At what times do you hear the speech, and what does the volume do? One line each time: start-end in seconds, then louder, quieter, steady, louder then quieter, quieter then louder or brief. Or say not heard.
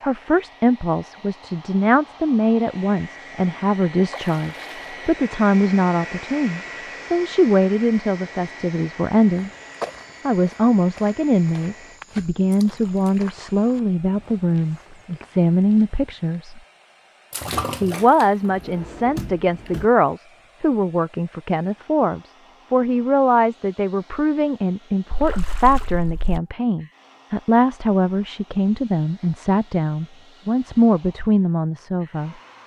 0.0-9.5 steady
10.2-16.6 steady
17.8-32.4 steady.